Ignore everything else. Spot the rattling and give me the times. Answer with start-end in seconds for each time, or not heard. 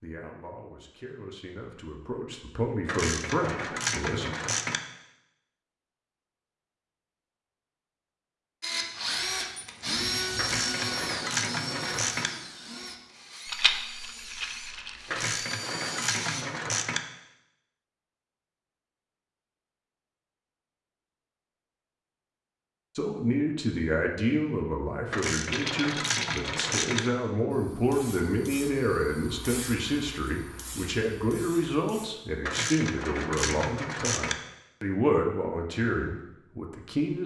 13.4-15.2, 25.4-27.1.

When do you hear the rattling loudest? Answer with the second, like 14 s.
14 s.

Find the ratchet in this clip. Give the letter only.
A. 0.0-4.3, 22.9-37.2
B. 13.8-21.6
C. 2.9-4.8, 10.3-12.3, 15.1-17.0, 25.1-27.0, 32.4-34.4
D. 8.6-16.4
C.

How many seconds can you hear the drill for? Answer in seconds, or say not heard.
8 s.